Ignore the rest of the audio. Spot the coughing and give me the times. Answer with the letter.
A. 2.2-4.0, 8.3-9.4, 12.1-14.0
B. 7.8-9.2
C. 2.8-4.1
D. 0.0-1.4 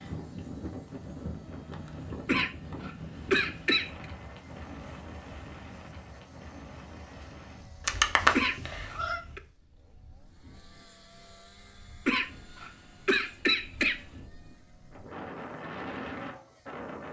A.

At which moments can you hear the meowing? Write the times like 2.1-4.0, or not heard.
7.8-9.2.